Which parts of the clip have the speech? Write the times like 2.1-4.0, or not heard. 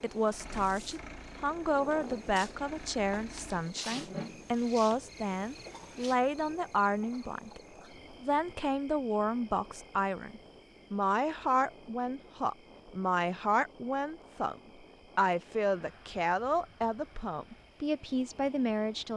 0.0-7.6, 8.2-19.1.